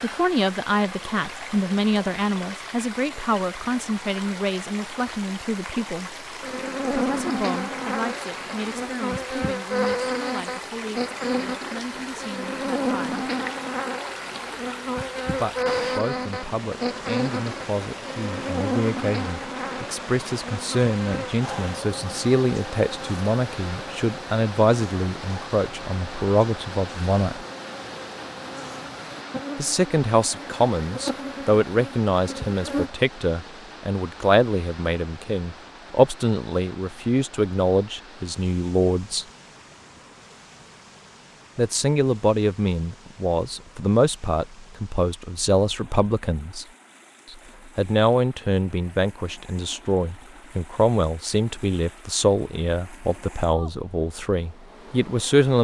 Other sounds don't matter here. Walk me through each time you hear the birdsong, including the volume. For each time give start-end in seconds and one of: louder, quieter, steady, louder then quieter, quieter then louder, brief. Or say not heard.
not heard.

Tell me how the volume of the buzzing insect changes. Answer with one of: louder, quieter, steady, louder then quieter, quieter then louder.
quieter.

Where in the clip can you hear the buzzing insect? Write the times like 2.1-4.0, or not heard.
6.4-32.9.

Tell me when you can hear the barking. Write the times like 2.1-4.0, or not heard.
not heard.